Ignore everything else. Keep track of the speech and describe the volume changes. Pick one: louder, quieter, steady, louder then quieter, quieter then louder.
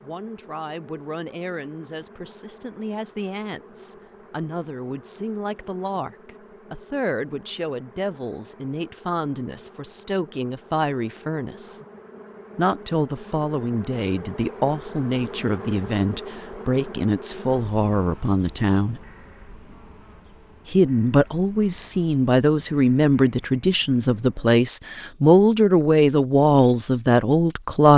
louder.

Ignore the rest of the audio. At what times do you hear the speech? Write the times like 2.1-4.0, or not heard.
0.0-11.8, 12.6-19.0, 20.6-27.9.